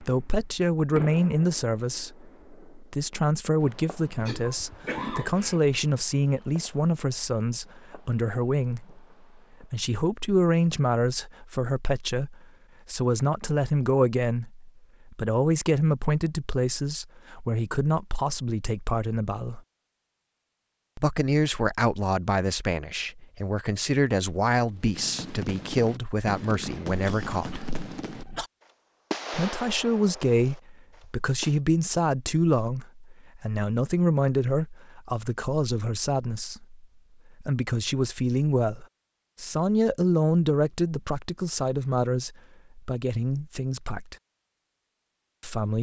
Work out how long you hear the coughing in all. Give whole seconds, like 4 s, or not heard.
3 s.